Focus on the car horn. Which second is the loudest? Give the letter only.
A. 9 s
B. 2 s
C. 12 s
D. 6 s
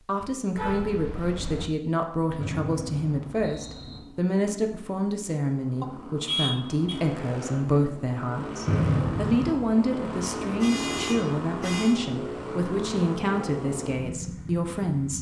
D.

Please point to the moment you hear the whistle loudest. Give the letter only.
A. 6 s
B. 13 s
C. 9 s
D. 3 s
C.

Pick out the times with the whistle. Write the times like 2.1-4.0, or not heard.
2.4-4.0, 8.7-9.7.